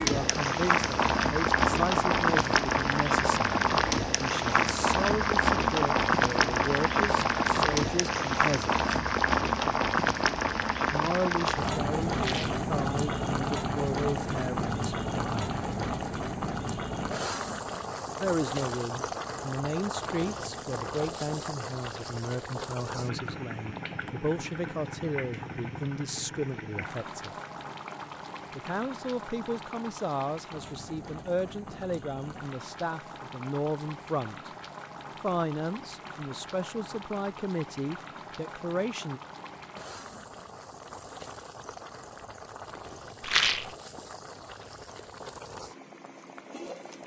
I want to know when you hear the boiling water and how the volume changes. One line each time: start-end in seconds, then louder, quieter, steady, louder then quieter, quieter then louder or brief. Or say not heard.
0.0-47.0 quieter.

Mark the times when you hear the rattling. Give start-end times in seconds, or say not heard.
12.2-12.7, 43.2-43.7.